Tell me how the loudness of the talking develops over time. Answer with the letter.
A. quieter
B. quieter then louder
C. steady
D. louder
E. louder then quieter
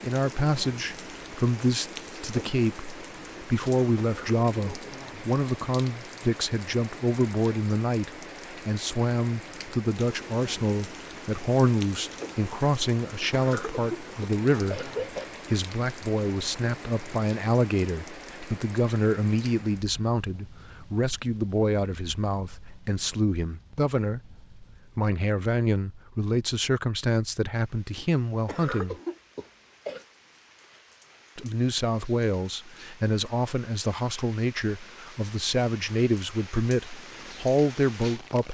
C.